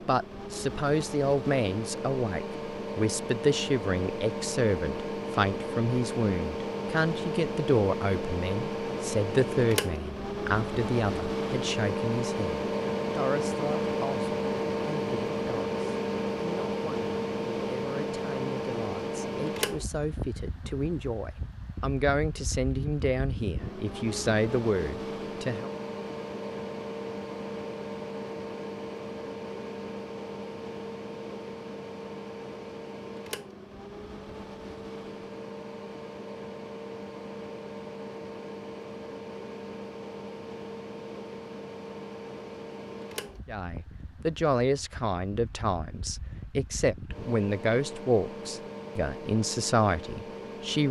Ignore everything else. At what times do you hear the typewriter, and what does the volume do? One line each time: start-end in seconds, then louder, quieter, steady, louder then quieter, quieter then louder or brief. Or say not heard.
not heard.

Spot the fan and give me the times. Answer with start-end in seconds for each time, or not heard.
0.0-50.8.